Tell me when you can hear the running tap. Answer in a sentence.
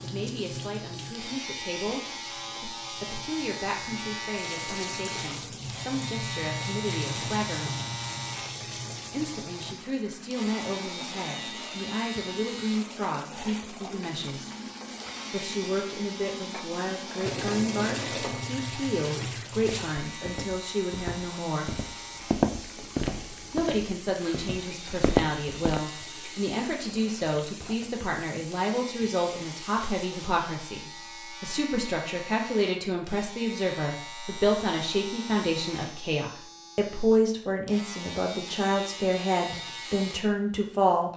The running tap can be heard from 0.0 to 30.3 s.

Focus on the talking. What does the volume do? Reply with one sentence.
The loudness of the talking goes up.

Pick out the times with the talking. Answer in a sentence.
The talking can be heard from 0.0 to 7.8 s, from 9.1 to 14.6 s, from 15.3 to 21.8 s and from 23.5 to 41.1 s.